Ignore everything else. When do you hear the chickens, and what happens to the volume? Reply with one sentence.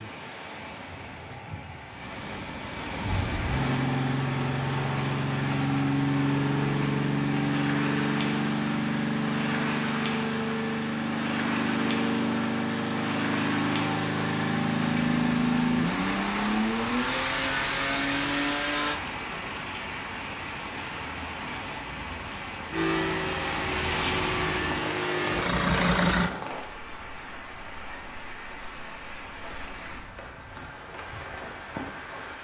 You can't hear the chickens here.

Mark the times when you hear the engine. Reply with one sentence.
You can hear the engine from 3.0 to 19.0 s and from 22.7 to 26.3 s.